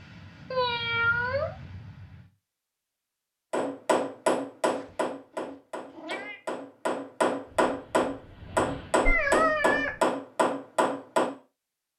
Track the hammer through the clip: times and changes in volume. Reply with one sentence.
The hammer can be heard from 3.5 to 11.3 s, getting quieter then louder.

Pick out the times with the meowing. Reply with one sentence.
The meowing can be heard from 0.5 to 1.6 s, from 4.8 to 6.4 s and from 9.1 to 10.0 s.